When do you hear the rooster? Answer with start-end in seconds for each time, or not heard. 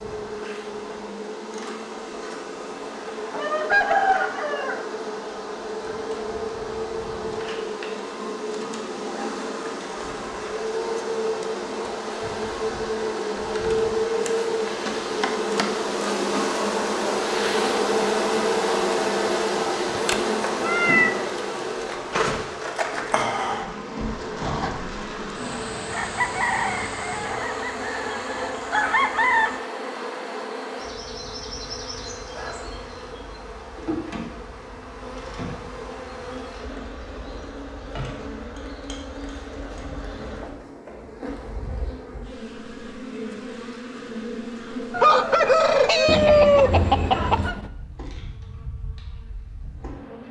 3.3-4.8, 25.9-29.6, 44.9-47.5.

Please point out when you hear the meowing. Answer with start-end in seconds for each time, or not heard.
19.9-21.4, 46.0-47.7.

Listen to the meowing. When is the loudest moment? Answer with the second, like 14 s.
21 s.